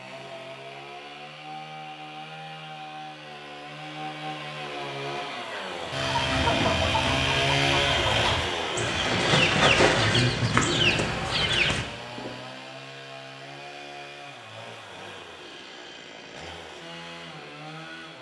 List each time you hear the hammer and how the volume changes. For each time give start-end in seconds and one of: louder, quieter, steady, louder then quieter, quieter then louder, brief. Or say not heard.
not heard.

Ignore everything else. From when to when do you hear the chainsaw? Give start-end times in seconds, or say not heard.
0.0-18.1.